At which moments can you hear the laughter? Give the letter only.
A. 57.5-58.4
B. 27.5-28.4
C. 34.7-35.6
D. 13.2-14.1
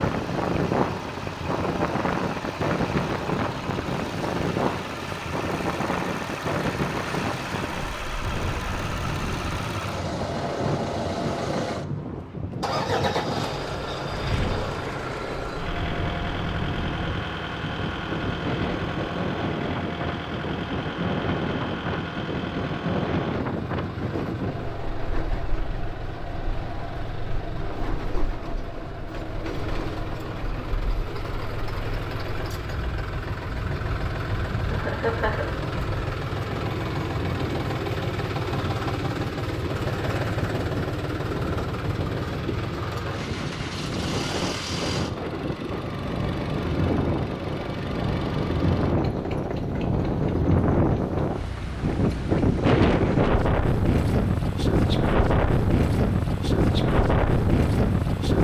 C.